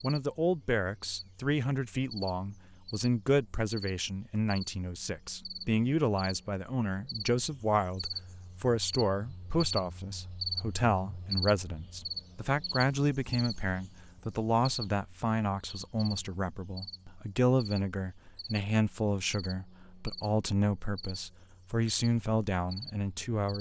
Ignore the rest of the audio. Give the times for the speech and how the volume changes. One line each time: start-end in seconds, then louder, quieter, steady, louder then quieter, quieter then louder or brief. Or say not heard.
0.0-23.5 steady.